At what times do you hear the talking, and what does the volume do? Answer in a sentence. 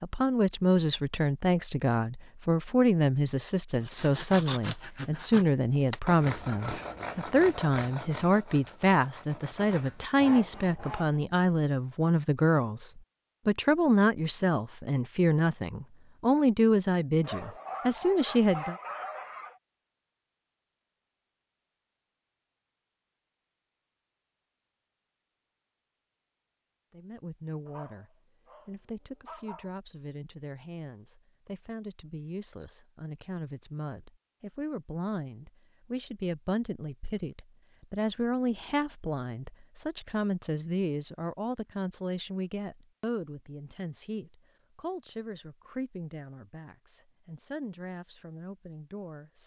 You can hear the talking from 0.0 to 18.8 s, at a steady volume; and from 26.9 to 49.4 s, getting louder then quieter.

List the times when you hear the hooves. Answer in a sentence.
You can't hear the hooves here.